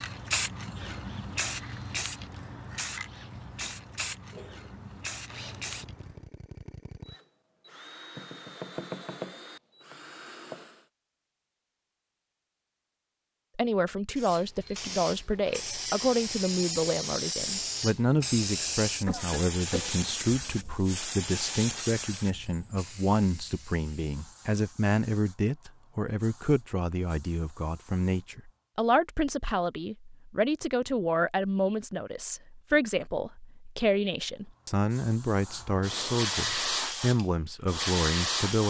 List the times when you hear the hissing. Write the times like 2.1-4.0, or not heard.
0.0-6.2, 14.2-28.6, 34.4-38.6.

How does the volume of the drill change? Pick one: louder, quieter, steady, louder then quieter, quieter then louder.
louder.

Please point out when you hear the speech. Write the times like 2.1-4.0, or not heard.
13.6-38.6.